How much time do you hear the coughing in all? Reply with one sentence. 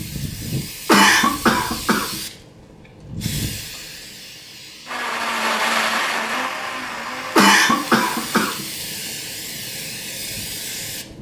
The coughing can be heard for 3 seconds in total.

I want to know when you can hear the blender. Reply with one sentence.
You can hear the blender from 4.8 to 8.5 s.